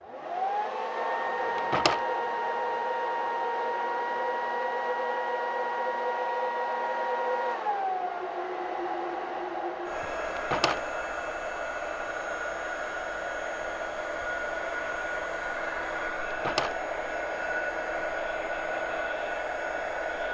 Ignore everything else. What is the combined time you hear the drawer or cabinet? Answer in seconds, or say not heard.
2 s.